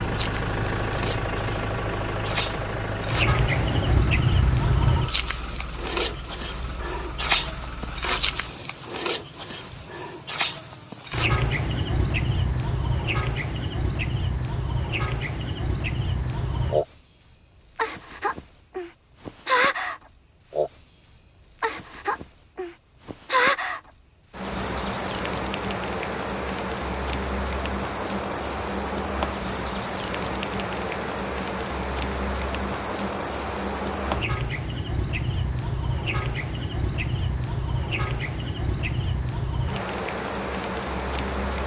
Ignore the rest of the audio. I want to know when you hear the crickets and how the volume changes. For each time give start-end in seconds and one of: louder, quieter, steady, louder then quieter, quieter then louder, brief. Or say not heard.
0.0-41.6 quieter.